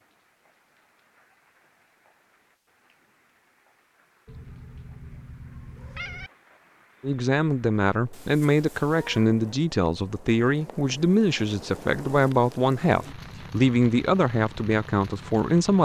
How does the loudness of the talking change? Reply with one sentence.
The volume of the talking stays about the same.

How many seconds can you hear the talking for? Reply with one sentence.
You can hear the talking for 9 seconds altogether.